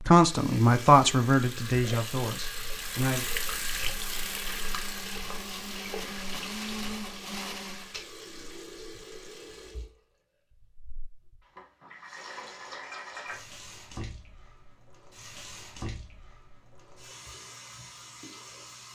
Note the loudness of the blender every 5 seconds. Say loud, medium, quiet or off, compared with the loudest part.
medium, loud, off, off.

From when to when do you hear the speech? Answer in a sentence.
The speech can be heard from 0.0 to 3.2 s.